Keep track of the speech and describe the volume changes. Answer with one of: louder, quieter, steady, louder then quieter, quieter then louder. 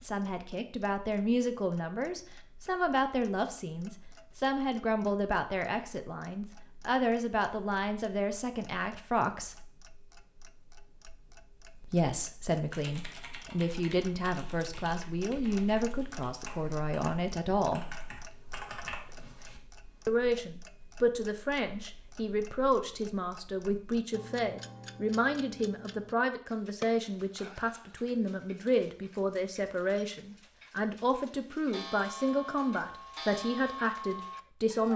steady.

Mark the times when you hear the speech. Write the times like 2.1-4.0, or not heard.
0.0-9.6, 11.8-17.9, 20.1-34.9.